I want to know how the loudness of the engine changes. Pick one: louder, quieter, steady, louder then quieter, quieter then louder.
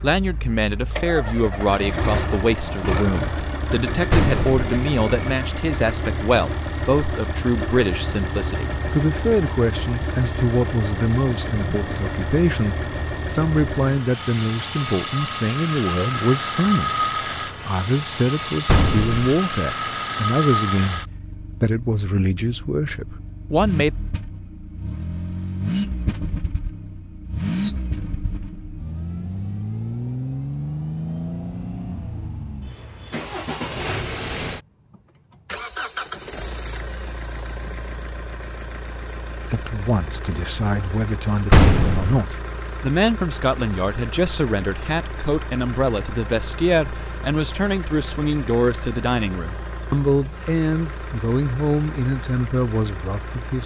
quieter.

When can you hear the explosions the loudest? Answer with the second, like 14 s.
42 s.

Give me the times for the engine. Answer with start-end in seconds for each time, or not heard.
0.0-53.6.